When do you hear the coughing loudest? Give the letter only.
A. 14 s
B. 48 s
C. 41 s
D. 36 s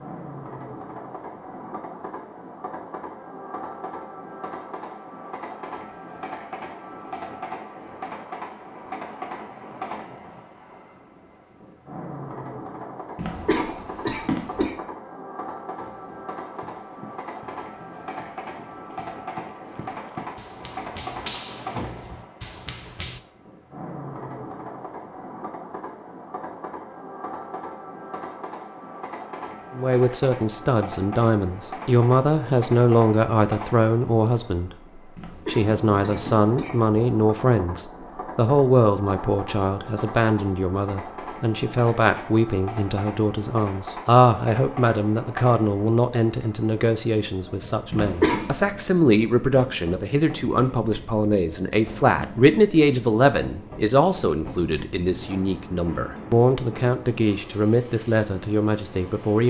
B.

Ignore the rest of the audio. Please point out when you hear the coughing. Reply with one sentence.
The coughing can be heard from 13.2 to 14.8 s, from 35.1 to 37.0 s and from 47.9 to 48.5 s.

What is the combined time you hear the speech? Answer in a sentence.
You can hear the speech for 29 seconds altogether.